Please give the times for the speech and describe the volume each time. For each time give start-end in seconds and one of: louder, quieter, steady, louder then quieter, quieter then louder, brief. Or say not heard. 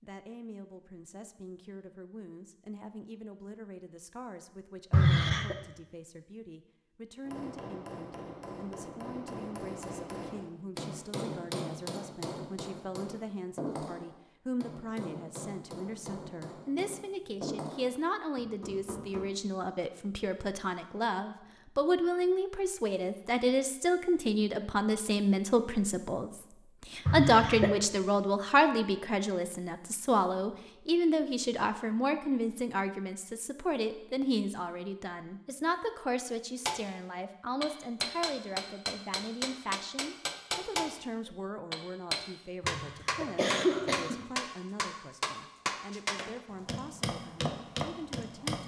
0.0-48.6 louder then quieter.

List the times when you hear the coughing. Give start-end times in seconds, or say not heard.
4.9-5.5, 27.1-27.8, 42.6-44.2.